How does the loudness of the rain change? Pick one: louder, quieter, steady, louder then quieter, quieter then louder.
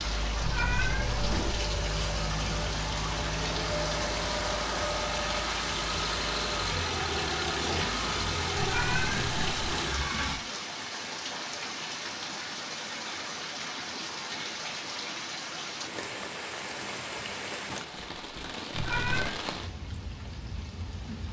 steady.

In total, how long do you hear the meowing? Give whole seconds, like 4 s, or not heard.
3 s.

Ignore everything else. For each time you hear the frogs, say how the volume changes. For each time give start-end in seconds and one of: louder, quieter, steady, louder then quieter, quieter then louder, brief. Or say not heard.
not heard.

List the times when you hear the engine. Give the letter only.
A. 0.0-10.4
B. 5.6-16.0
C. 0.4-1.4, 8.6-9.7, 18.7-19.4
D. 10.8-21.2
A.